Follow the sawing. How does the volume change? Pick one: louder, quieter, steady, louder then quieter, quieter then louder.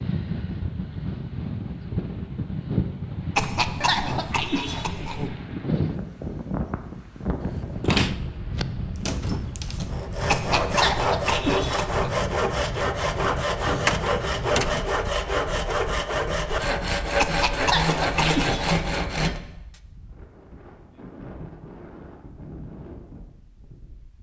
steady.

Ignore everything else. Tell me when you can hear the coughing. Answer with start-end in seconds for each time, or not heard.
3.4-5.3, 10.2-12.1, 17.1-18.8.